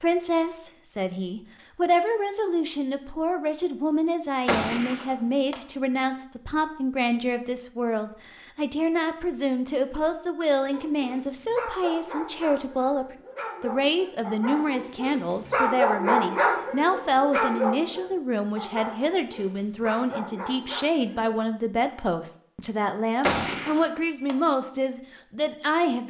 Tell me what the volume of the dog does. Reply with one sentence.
The loudness of the dog goes up, then down.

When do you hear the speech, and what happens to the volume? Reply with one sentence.
You can hear the speech from 0.0 to 26.0 s, at a steady volume.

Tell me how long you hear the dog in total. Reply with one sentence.
You can hear the dog for 11 seconds altogether.